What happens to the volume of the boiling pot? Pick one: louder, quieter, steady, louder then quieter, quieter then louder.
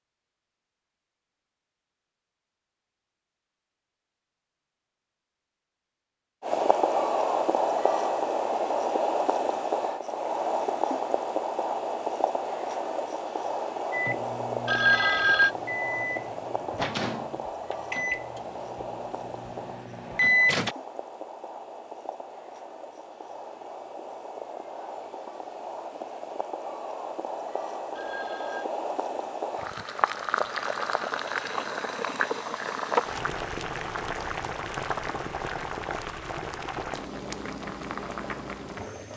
quieter then louder.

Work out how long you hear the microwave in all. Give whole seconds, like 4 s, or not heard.
7 s.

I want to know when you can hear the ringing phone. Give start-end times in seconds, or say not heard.
14.7-15.5, 27.9-28.6.